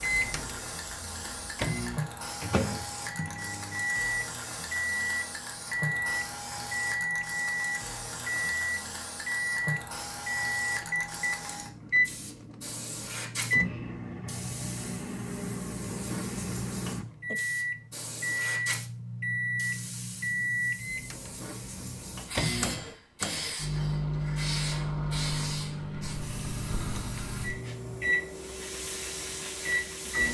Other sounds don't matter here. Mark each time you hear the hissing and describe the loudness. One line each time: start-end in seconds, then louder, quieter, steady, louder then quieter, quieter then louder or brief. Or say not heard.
0.0-30.2 steady.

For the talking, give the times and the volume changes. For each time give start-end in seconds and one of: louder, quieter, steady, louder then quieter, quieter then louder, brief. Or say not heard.
not heard.